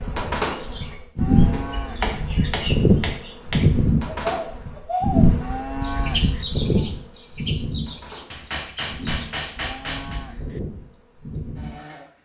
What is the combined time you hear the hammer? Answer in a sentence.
You can hear the hammer for 4 seconds altogether.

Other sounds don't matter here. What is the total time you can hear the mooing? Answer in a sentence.
The mooing can be heard for 3 seconds in total.